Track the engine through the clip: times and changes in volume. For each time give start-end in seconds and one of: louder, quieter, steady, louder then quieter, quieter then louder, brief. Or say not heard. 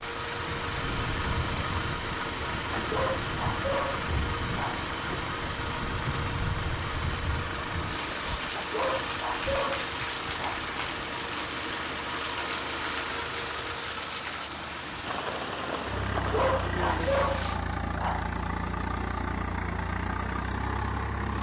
0.0-21.3 steady.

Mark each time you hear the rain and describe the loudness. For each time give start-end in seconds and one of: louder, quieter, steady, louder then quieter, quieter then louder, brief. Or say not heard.
0.0-17.6 steady.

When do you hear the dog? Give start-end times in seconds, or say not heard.
2.8-4.8, 8.6-10.6, 16.1-18.3.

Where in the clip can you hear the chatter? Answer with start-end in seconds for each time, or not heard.
not heard.